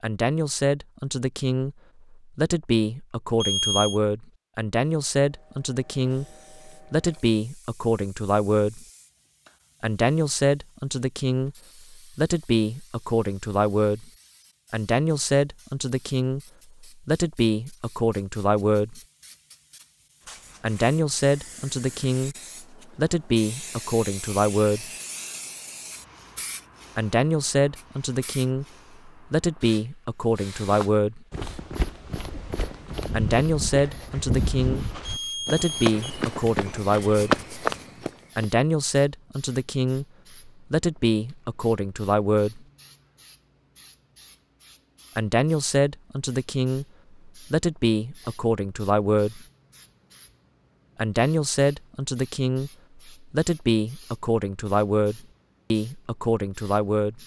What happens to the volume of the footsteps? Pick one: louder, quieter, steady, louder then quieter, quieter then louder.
louder.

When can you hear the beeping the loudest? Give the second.
4 s.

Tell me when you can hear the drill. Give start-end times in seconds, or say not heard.
not heard.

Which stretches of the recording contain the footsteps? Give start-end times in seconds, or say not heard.
30.7-38.5.